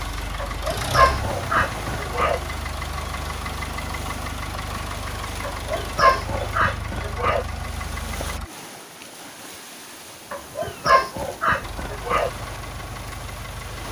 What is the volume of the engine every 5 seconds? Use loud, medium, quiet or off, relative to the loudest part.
loud, loud, medium.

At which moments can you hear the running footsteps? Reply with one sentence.
The running footsteps can't be heard in this clip.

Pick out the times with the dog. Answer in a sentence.
The dog can be heard from 0.4 to 2.4 s, from 5.4 to 7.5 s and from 10.3 to 12.3 s.